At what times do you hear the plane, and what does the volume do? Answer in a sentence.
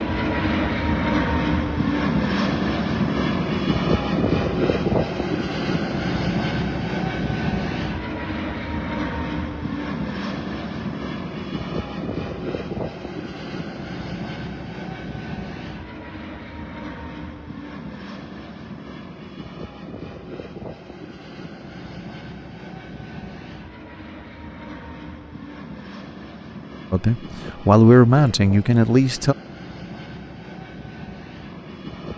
The plane can be heard from 0.0 to 32.1 s, getting quieter.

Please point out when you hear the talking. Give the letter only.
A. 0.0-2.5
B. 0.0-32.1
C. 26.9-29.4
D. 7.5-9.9
C.